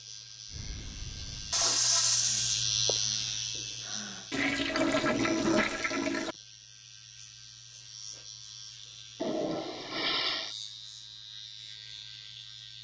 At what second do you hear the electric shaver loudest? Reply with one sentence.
The loudest moment of the electric shaver is at 3 seconds.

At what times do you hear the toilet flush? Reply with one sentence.
The toilet flush can be heard from 1.5 to 2.6 s, from 4.3 to 6.3 s and from 9.2 to 10.6 s.